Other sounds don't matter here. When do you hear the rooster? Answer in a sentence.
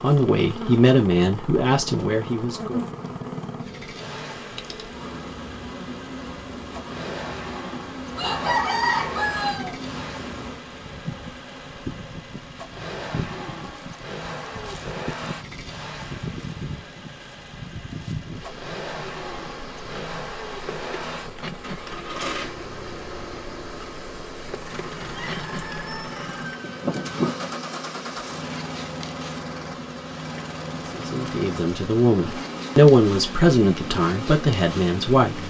You can hear the rooster from 8.2 to 9.8 s and from 25.1 to 27.6 s.